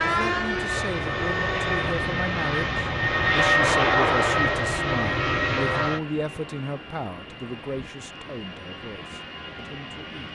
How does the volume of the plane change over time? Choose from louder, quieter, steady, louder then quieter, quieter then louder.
louder then quieter.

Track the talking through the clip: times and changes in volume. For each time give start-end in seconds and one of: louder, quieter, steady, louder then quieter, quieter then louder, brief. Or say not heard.
0.0-10.3 quieter.